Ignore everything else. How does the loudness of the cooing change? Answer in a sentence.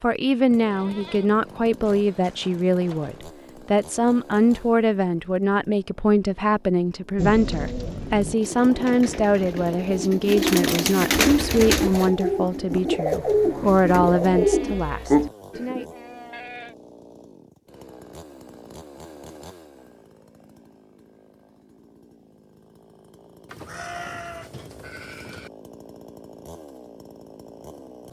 The volume of the cooing goes up.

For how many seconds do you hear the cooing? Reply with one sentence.
You can hear the cooing for 9 seconds altogether.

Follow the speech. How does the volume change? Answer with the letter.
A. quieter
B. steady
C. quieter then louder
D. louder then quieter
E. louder
B.